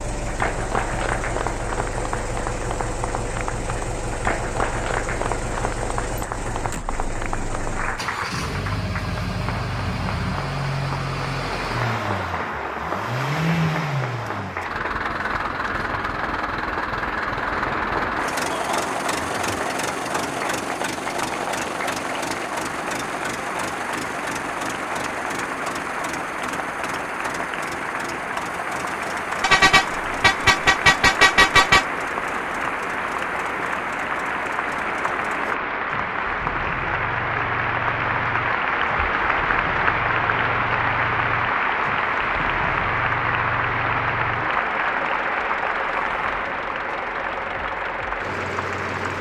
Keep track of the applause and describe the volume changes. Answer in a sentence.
The volume of the applause goes up.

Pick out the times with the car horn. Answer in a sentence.
You can hear the car horn from 29.4 to 31.9 s.